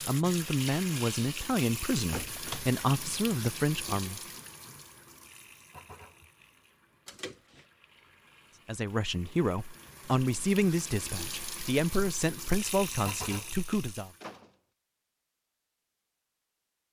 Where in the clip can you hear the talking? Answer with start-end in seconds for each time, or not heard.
0.1-4.2, 8.7-14.1.